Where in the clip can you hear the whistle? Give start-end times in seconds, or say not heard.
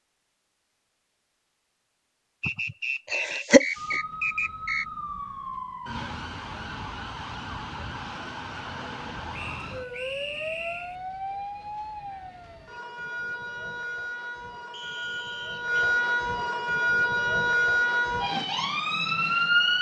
2.4-4.8, 9.3-10.9, 14.7-15.7.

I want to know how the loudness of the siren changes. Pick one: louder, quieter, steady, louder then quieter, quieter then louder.
louder.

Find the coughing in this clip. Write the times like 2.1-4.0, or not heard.
2.5-3.6.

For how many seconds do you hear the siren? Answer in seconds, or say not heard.
16 s.